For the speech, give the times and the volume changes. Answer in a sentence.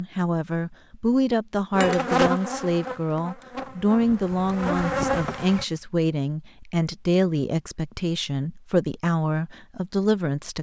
You can hear the speech from 0.0 to 10.5 s, at a steady volume.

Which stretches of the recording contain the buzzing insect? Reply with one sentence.
The buzzing insect can be heard from 1.7 to 5.7 s.